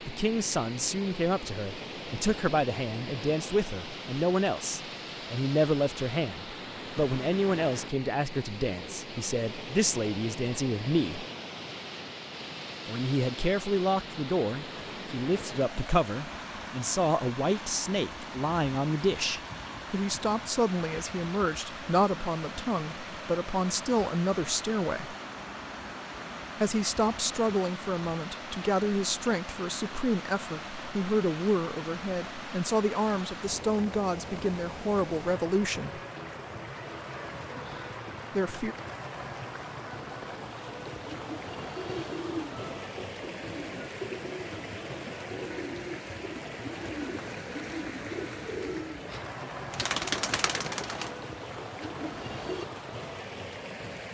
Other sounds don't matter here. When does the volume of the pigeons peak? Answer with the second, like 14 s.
50 s.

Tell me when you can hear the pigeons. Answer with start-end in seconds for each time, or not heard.
40.9-52.6.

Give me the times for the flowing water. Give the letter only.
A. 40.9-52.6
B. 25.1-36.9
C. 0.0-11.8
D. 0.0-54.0
D.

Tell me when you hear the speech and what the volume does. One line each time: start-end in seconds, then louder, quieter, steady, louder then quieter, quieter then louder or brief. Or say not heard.
0.1-11.2 steady
12.8-25.1 steady
26.6-36.0 steady
38.3-38.8 brief.